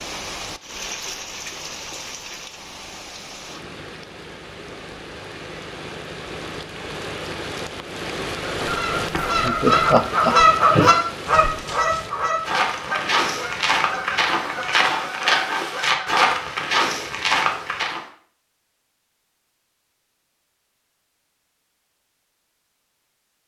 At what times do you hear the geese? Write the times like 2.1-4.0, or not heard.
8.6-16.2.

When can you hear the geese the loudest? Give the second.
11 s.